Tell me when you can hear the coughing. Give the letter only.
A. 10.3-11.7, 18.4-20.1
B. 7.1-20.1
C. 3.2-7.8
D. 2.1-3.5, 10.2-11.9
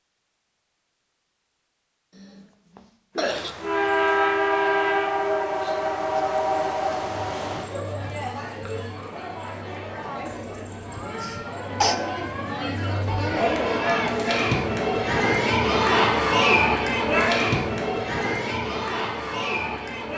D.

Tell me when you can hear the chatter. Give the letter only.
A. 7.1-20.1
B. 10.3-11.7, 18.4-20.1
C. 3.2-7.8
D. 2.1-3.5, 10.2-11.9
A.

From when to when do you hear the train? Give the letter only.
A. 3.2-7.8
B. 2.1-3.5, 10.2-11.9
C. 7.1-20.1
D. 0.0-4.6
A.